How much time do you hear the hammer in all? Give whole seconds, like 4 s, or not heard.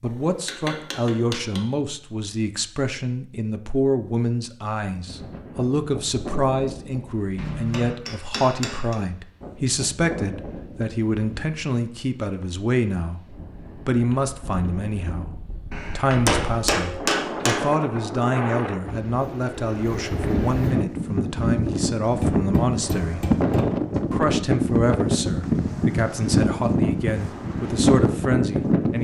7 s.